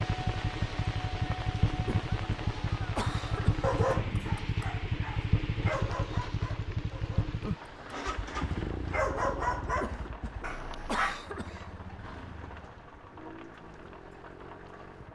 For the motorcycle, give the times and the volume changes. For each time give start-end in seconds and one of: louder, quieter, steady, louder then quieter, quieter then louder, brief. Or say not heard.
0.0-15.1 quieter.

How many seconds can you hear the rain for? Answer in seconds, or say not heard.
15 s.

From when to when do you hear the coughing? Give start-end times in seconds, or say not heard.
1.9-3.7, 9.8-11.8.